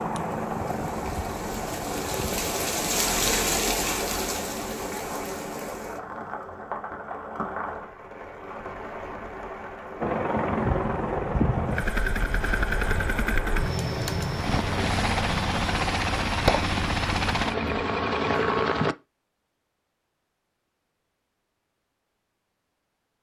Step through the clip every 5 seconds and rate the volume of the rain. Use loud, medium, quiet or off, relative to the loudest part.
loud, medium, medium, off, off.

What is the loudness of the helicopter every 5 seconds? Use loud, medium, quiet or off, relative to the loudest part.
medium, off, loud, loud, off.